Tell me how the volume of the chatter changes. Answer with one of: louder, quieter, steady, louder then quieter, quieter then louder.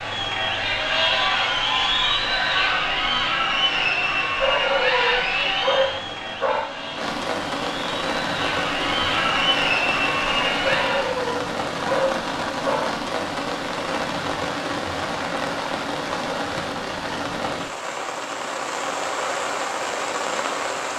quieter then louder.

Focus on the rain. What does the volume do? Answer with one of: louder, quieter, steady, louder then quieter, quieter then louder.
louder.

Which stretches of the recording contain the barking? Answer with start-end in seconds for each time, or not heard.
4.3-6.9, 10.6-13.0.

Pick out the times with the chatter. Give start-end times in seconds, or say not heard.
0.0-11.2.